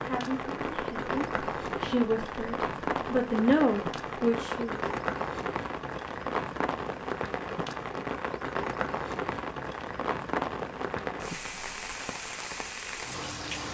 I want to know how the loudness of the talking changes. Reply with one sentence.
The loudness of the talking goes up.